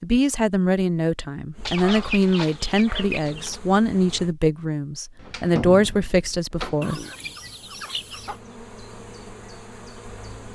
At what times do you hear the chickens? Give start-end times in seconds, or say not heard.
1.6-3.6, 6.8-8.4.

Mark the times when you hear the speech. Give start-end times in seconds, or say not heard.
0.0-7.0.